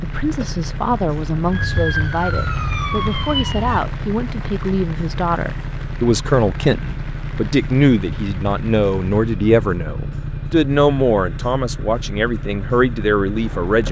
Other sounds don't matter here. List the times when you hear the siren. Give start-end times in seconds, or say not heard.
1.5-3.8.